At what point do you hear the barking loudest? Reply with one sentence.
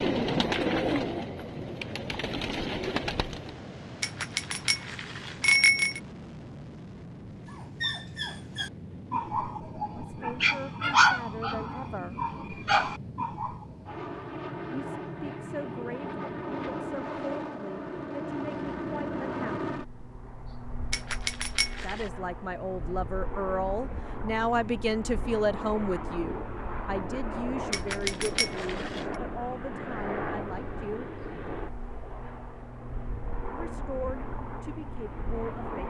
The volume of the barking peaks at 11 seconds.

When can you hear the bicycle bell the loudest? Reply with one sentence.
The loudest moment of the bicycle bell is at 6 seconds.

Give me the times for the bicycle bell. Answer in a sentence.
You can hear the bicycle bell from 4.0 to 6.0 s, from 20.9 to 22.1 s and from 27.7 to 29.1 s.